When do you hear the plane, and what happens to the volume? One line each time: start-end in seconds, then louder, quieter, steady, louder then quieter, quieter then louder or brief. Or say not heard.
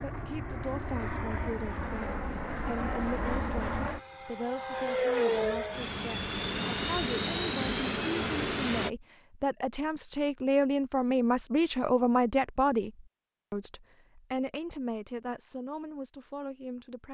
0.0-8.9 louder.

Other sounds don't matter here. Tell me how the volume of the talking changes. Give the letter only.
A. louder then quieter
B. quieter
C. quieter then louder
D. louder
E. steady
A.